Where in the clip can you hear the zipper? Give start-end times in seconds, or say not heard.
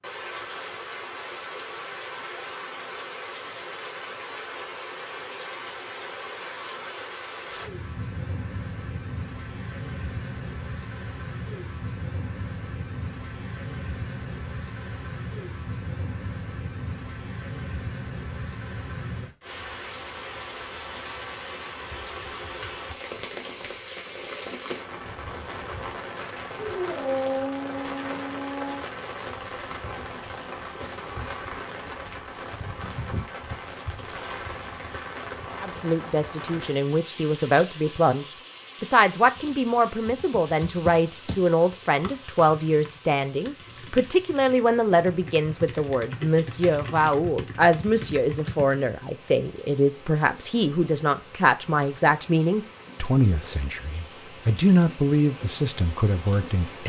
not heard.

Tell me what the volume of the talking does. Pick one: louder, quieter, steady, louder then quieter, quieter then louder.
steady.